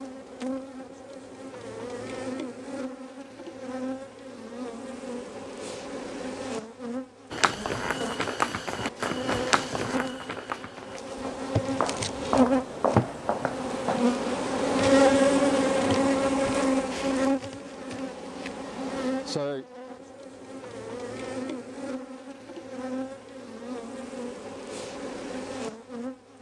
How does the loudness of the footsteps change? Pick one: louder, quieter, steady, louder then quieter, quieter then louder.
quieter then louder.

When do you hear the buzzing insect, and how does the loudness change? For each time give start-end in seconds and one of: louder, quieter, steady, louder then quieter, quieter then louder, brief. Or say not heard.
0.0-26.3 louder then quieter.